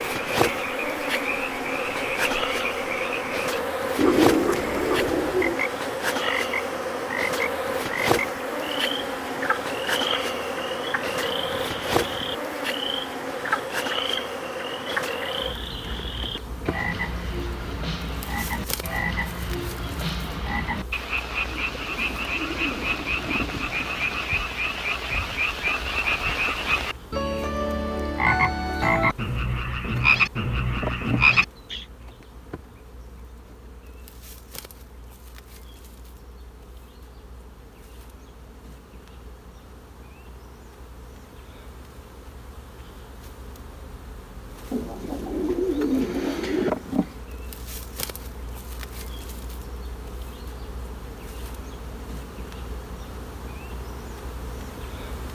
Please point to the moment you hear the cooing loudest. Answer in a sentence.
The volume of the cooing peaks at 4 seconds.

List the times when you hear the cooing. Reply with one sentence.
The cooing can be heard from 4.0 to 5.6 s, from 21.5 to 24.3 s and from 44.7 to 46.7 s.